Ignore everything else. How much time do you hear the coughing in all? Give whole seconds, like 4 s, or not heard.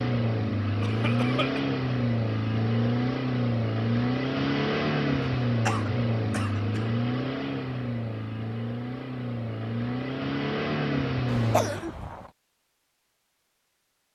3 s.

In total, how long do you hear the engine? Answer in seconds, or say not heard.
12 s.